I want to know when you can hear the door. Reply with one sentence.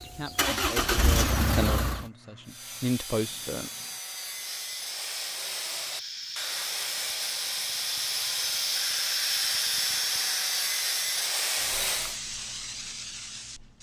You can't hear the door here.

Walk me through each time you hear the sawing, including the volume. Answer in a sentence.
You can hear the sawing from 2.5 to 12.2 s, getting louder.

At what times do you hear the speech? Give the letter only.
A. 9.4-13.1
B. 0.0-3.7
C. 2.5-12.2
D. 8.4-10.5
B.